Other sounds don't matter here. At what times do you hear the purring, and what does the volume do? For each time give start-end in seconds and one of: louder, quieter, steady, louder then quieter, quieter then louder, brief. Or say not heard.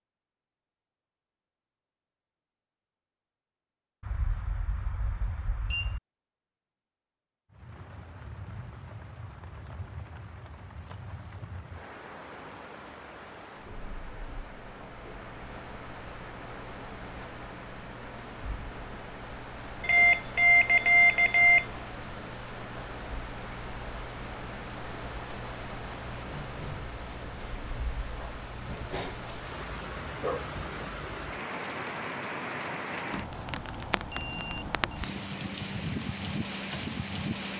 not heard.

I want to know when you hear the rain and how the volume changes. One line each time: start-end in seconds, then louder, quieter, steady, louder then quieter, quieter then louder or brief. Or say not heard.
7.5-37.5 louder.